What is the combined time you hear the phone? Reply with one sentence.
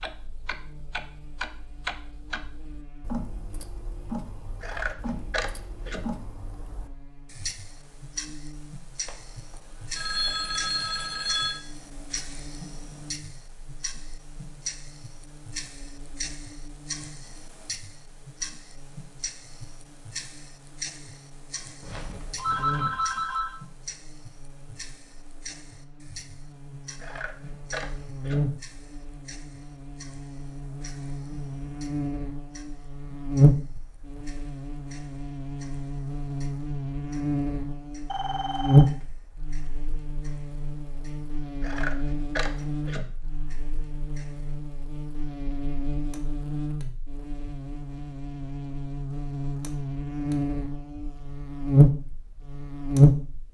The phone can be heard for 5 seconds in total.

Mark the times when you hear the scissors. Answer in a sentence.
The scissors can be heard from 4.6 to 6.0 s, from 27.0 to 28.4 s and from 41.6 to 43.0 s.